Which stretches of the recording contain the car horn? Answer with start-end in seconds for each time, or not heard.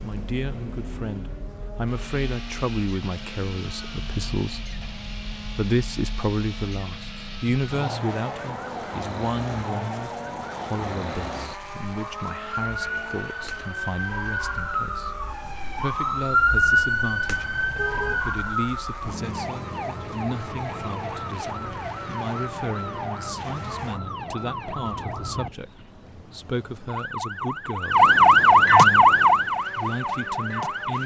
17.6-18.2.